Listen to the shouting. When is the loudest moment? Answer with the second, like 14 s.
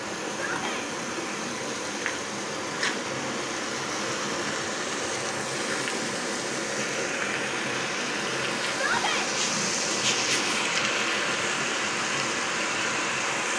9 s.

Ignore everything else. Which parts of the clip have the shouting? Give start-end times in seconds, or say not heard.
0.3-0.9, 8.7-9.3.